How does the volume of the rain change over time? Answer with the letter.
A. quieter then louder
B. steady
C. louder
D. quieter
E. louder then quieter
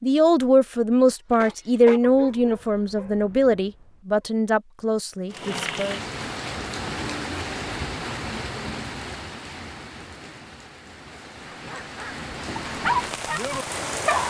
A.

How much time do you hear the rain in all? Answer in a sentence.
The rain can be heard for 9 seconds in total.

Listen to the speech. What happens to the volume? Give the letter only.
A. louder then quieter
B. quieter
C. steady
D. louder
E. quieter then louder
B.